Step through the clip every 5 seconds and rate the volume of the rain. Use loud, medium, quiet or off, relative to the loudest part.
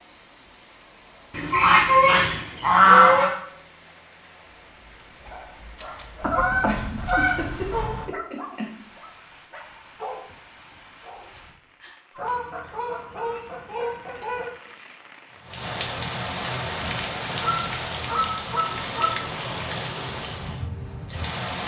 quiet, quiet, quiet, loud, loud.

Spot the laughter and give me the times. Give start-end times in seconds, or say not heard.
6.2-8.8.